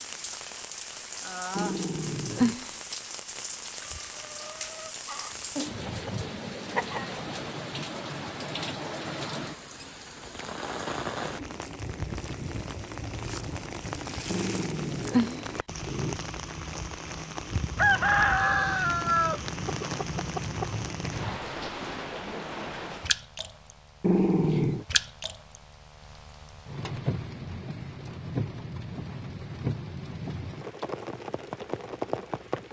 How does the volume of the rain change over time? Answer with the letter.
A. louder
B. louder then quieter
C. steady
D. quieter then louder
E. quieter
C.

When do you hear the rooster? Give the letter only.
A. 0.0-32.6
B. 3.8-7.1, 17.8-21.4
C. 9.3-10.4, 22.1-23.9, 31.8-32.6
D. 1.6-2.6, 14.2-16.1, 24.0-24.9
B.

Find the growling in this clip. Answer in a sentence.
The growling can be heard from 1.6 to 2.6 s, from 14.2 to 16.1 s and from 24.0 to 24.9 s.